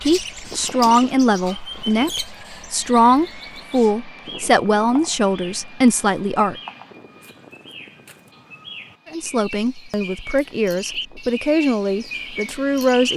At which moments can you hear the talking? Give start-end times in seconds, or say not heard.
0.1-6.5, 9.1-13.1.